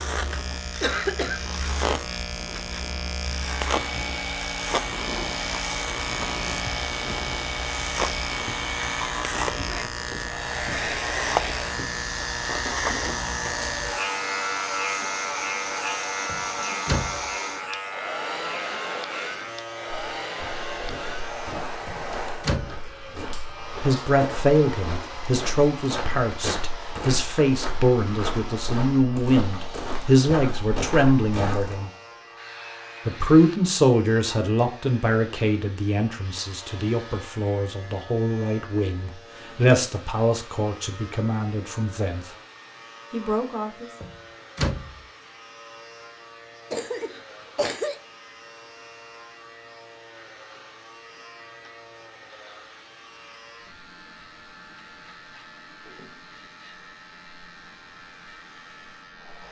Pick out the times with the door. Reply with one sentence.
You can hear the door from 16.2 to 17.3 s, from 21.9 to 22.9 s and from 44.0 to 45.0 s.